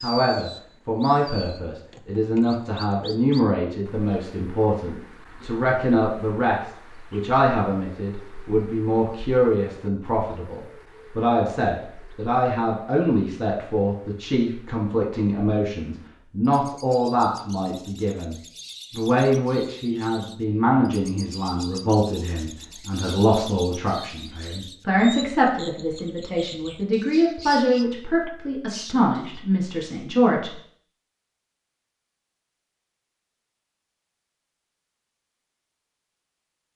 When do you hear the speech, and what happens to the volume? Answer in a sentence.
The speech can be heard from 0.0 to 30.6 s, at a steady volume.